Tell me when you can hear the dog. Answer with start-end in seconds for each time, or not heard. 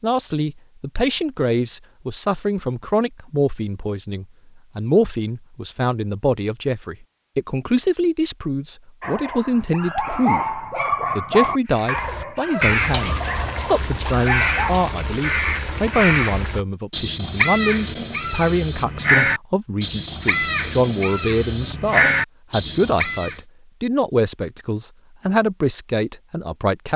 9.0-14.9.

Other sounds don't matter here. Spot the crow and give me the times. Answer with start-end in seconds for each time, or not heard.
11.7-23.4.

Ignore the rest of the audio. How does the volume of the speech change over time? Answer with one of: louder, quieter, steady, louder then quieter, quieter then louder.
steady.